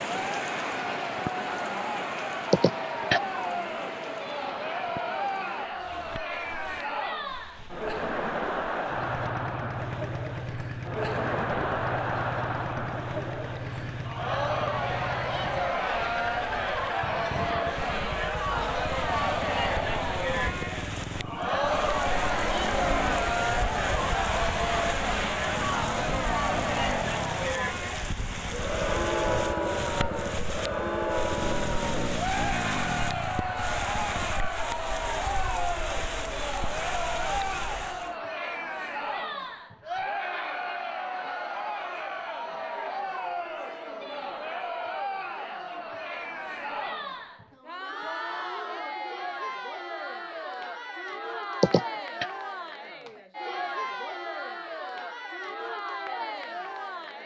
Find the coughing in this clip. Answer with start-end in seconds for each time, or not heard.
2.5-3.2, 51.6-52.2.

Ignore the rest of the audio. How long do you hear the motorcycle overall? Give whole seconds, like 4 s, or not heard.
26 s.